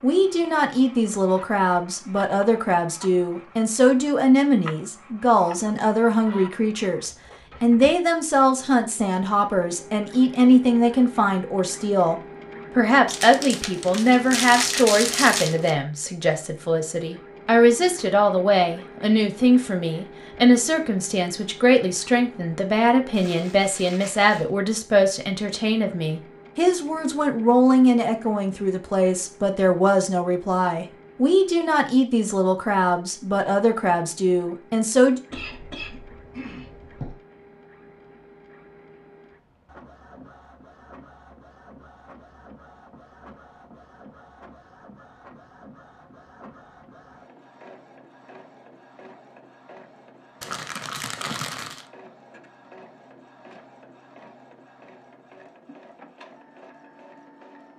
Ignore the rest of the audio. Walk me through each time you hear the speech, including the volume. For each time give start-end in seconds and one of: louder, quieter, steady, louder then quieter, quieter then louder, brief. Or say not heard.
0.0-35.2 steady.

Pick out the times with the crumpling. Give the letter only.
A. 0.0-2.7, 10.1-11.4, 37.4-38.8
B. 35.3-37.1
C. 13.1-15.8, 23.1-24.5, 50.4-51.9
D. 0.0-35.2
C.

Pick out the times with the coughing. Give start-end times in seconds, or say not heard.
35.3-37.1.